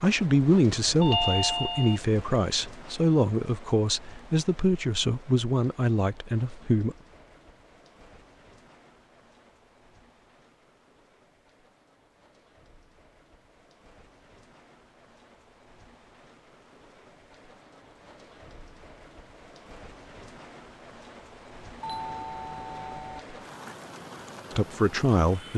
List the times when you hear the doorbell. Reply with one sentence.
You can hear the doorbell from 1.0 to 2.0 s and from 21.8 to 23.2 s.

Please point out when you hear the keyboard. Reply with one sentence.
The keyboard can't be heard in this clip.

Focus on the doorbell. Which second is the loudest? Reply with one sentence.
The volume of the doorbell peaks at 1 second.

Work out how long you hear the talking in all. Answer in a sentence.
You can hear the talking for 8 seconds altogether.